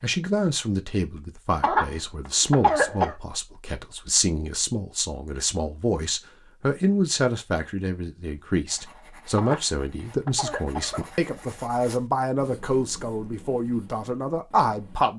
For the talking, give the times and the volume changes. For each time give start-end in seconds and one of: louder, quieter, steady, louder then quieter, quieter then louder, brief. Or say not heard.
0.0-15.1 steady.